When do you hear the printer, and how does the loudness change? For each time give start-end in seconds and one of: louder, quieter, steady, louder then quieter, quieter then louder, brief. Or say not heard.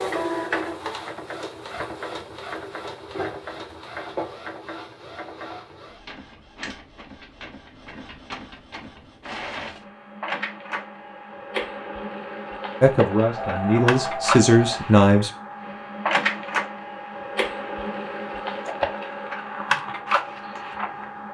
0.0-21.2 quieter then louder.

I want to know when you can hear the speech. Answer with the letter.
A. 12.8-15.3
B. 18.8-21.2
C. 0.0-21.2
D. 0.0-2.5
A.